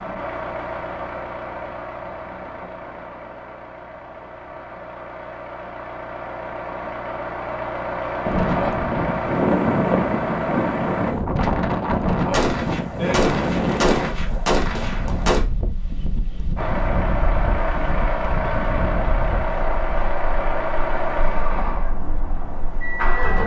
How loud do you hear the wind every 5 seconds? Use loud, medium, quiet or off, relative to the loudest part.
off, loud, loud, medium, quiet.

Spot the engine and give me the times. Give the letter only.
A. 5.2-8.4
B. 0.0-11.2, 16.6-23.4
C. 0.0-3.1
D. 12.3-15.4
B.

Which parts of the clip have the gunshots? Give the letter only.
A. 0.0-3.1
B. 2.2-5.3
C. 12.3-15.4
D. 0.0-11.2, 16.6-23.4
C.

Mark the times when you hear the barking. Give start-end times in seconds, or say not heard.
not heard.